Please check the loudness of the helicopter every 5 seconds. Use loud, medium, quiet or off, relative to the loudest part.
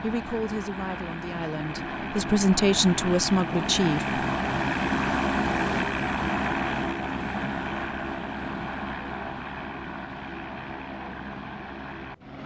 loud, loud, medium.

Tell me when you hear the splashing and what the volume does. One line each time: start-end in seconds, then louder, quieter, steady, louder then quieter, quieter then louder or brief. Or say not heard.
not heard.